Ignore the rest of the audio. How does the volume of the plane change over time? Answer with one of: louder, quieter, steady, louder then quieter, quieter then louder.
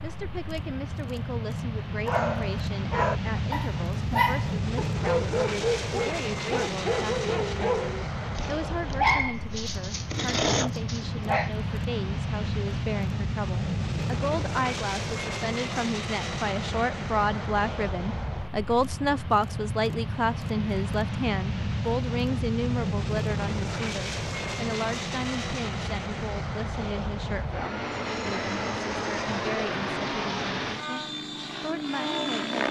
steady.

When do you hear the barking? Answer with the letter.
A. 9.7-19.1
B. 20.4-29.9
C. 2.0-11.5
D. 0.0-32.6
C.